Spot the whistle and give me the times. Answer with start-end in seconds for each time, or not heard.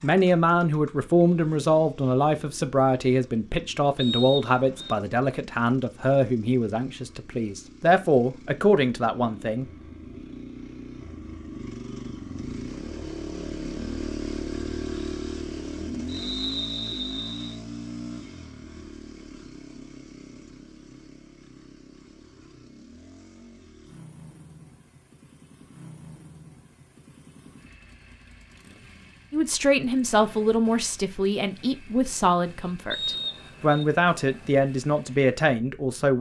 4.0-5.0, 16.1-17.6, 32.9-33.9.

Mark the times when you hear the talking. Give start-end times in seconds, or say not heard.
0.0-9.7, 29.3-36.1.